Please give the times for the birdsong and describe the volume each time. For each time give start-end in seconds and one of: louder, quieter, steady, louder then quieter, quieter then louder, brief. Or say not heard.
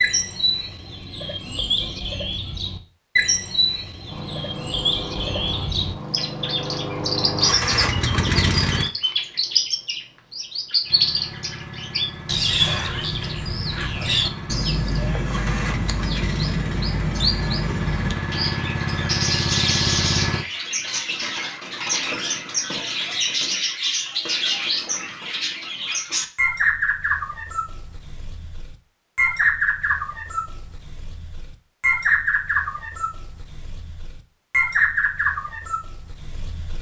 0.0-36.7 steady.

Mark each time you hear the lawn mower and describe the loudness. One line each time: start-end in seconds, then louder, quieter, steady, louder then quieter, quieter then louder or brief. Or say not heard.
4.0-8.9 louder
10.8-20.4 louder.